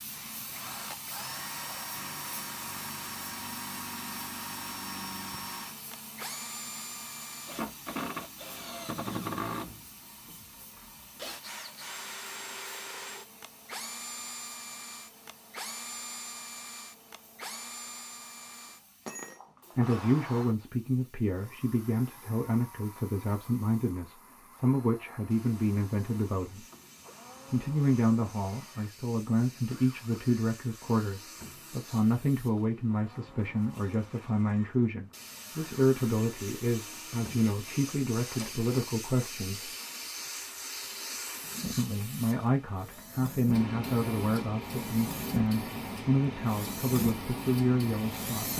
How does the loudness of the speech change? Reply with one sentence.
The loudness of the speech stays about the same.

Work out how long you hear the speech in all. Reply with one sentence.
You can hear the speech for 26 seconds altogether.